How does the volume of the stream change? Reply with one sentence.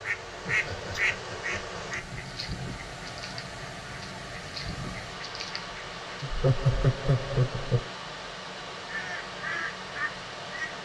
The volume of the stream stays about the same.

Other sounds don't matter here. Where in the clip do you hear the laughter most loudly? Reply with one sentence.
The volume of the laughter peaks at 7 seconds.